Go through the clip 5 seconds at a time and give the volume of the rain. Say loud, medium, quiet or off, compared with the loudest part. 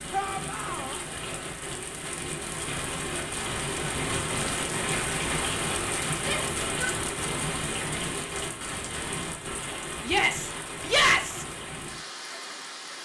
loud, loud, medium.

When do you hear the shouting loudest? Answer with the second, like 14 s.
11 s.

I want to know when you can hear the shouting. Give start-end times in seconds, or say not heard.
0.1-1.0, 6.2-7.0, 10.1-11.4.